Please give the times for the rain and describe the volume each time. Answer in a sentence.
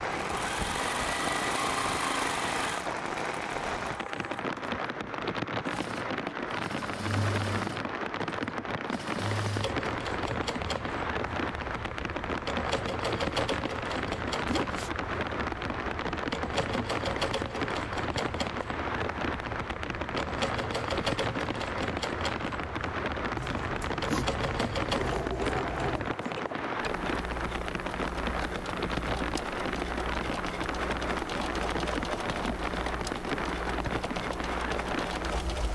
The rain can be heard from 0.0 to 35.7 s, at a steady volume.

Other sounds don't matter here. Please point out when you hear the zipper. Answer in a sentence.
You can hear the zipper from 14.4 to 15.1 s and from 23.4 to 25.9 s.